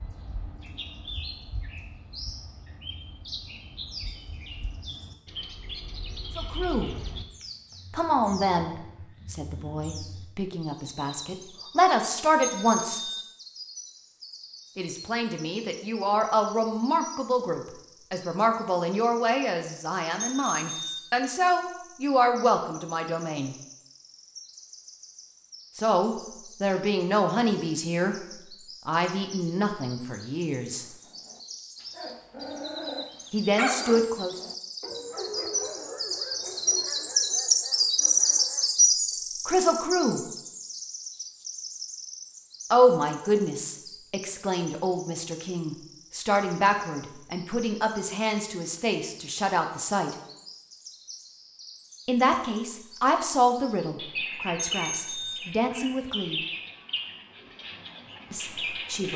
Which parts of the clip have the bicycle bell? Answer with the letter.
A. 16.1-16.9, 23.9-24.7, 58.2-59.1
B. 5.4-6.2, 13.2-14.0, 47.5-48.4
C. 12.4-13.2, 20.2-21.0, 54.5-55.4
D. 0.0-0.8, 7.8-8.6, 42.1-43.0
C.